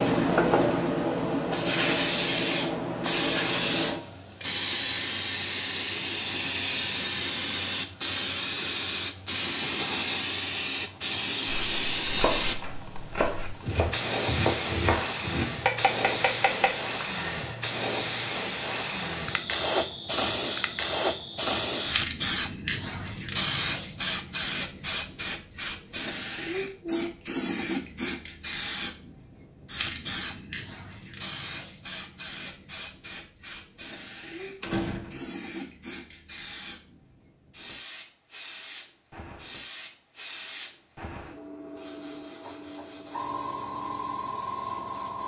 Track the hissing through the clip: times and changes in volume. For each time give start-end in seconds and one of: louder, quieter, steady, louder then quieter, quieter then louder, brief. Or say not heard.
0.0-45.2 quieter.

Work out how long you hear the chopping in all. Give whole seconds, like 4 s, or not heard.
6 s.